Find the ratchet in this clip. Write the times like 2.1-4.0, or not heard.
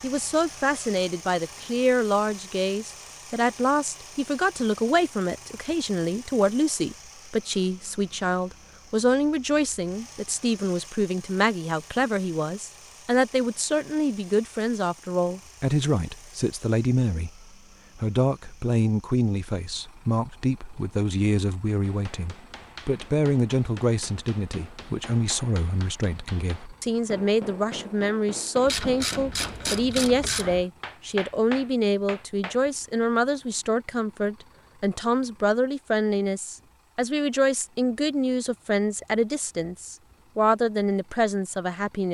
28.6-30.6.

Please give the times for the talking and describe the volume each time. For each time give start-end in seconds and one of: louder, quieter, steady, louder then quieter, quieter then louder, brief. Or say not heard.
0.0-42.0 steady.